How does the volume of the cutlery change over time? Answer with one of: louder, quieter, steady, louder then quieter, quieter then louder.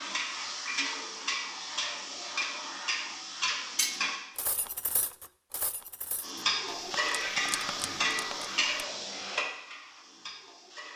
quieter then louder.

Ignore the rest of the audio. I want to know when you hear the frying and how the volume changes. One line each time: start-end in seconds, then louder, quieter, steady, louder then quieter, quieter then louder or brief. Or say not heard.
0.0-4.2 steady
6.2-10.9 quieter.